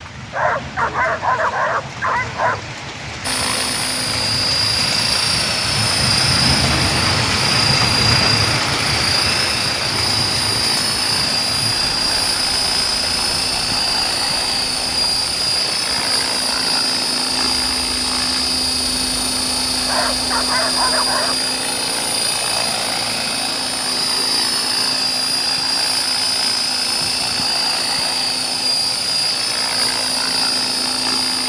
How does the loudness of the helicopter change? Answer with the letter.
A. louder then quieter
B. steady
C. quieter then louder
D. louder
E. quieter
B.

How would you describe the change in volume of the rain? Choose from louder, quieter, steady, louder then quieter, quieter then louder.
louder then quieter.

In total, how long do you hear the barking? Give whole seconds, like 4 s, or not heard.
4 s.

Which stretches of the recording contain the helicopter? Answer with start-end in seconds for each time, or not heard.
3.2-31.4.